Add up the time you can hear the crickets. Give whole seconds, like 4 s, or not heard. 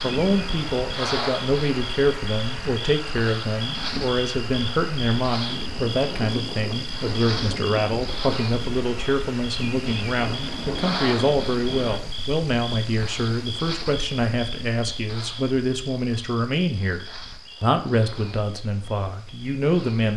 20 s.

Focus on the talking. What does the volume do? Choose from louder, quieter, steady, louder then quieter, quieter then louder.
steady.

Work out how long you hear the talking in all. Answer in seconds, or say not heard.
20 s.